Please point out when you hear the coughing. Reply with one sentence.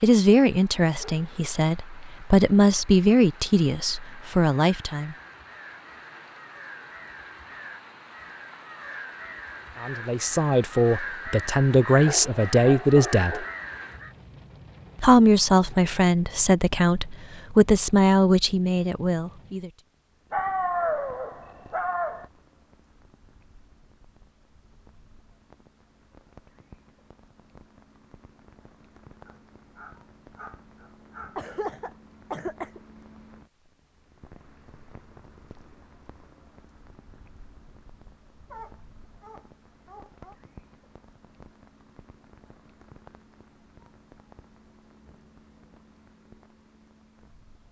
The coughing can be heard from 31.4 to 32.8 s.